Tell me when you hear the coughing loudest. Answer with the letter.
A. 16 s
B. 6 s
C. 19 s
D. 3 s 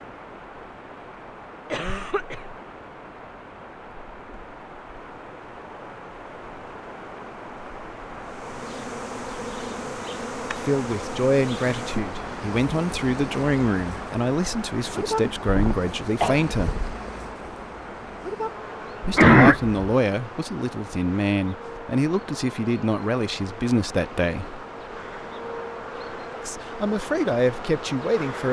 C.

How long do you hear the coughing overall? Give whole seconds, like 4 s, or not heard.
3 s.